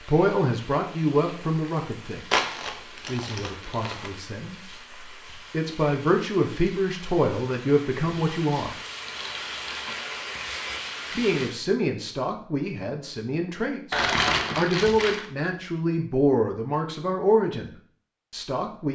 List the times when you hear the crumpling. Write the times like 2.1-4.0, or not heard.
2.3-4.2, 9.1-9.9, 13.9-15.3.